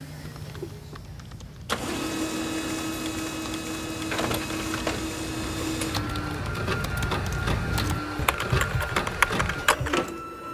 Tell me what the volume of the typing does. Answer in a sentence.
The loudness of the typing goes up.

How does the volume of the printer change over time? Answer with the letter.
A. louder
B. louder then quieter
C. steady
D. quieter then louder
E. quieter
C.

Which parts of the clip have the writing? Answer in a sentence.
You can't hear the writing here.